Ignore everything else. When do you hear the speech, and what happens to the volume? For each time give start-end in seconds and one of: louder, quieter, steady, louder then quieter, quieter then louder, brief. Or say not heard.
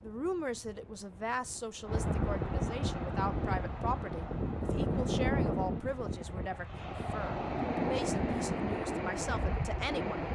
0.0-10.3 steady.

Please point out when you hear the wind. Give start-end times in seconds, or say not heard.
0.0-10.3.